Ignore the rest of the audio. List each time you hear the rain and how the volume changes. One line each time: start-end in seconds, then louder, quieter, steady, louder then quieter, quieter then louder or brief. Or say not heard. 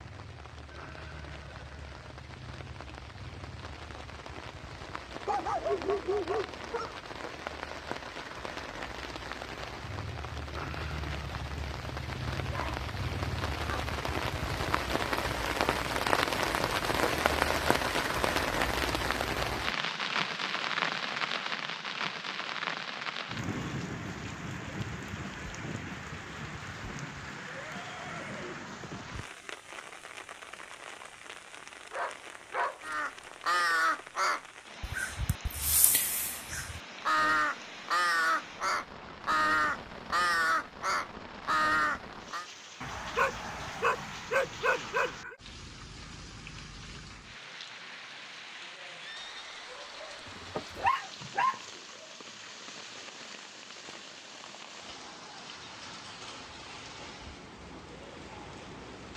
0.0-59.1 louder then quieter.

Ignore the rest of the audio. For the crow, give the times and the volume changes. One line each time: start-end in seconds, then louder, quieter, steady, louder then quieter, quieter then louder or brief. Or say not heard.
32.8-42.5 quieter then louder.